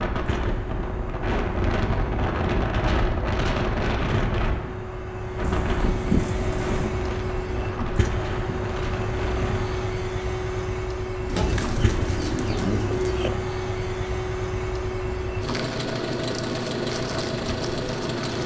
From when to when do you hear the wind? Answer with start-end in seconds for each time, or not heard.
0.0-9.8.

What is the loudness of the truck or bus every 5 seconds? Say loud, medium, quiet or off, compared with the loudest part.
medium, loud, loud, loud.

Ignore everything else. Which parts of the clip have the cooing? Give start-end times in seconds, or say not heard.
5.4-7.0, 11.2-13.3.